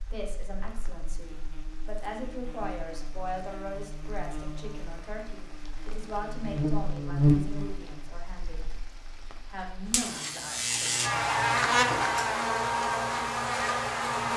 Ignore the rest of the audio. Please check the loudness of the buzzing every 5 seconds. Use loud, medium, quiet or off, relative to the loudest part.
quiet, loud, loud.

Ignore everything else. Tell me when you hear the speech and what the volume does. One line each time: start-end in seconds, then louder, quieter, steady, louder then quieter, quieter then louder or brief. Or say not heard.
0.1-8.7 louder then quieter
9.4-11.2 brief.